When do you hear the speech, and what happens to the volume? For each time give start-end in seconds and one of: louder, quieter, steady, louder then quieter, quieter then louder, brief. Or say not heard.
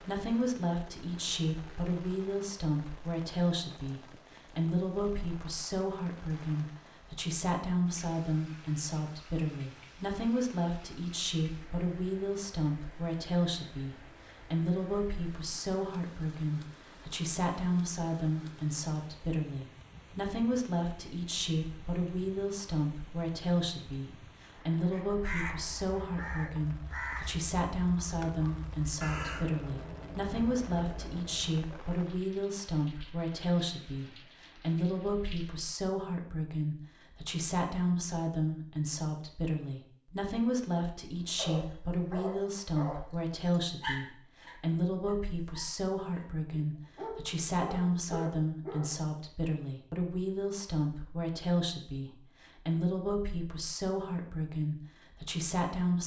0.0-56.0 steady.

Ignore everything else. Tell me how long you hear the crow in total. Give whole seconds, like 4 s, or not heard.
7 s.